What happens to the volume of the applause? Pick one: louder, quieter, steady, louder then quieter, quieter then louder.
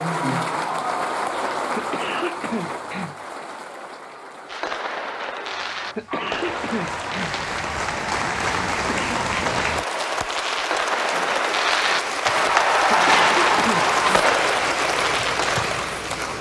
quieter then louder.